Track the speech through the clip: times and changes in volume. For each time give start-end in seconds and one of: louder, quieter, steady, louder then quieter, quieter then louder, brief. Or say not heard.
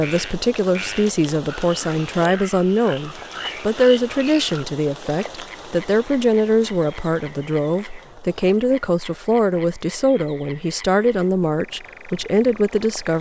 0.0-13.1 steady.